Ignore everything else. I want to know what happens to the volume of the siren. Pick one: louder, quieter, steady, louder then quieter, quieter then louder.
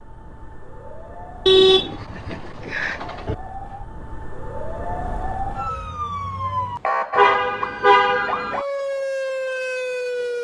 louder.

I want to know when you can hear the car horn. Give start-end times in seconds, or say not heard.
1.4-3.4, 7.2-8.6.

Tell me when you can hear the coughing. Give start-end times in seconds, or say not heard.
not heard.